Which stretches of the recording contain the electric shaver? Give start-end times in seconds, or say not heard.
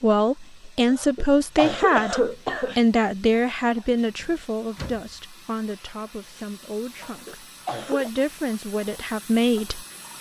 not heard.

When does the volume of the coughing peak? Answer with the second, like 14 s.
2 s.